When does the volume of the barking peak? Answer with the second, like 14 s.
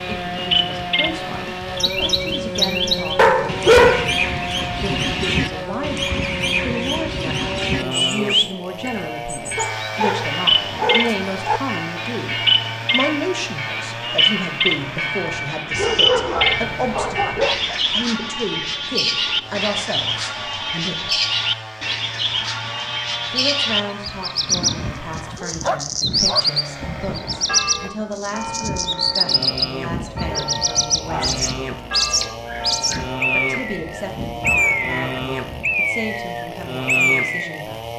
4 s.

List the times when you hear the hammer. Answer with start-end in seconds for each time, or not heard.
not heard.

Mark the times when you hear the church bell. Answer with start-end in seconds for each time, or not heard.
8.8-17.6, 26.8-35.8.